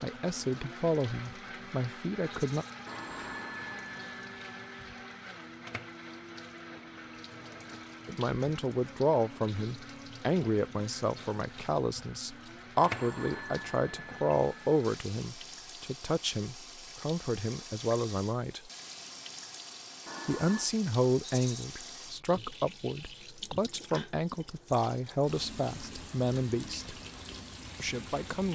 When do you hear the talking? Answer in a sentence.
The talking can be heard from 0.0 to 2.6 s, from 8.1 to 18.7 s, from 20.2 to 26.9 s and from 27.8 to 28.5 s.